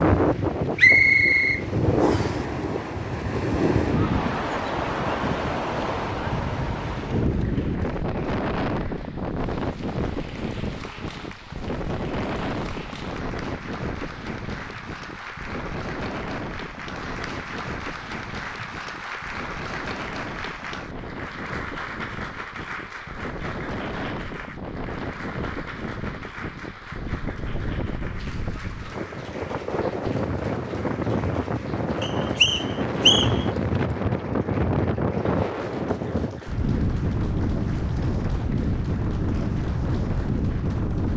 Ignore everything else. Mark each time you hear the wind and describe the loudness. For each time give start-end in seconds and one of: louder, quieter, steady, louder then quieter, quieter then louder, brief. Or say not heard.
0.0-41.1 quieter then louder.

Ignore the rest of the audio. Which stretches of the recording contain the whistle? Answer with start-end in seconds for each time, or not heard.
0.8-2.4, 32.0-33.5.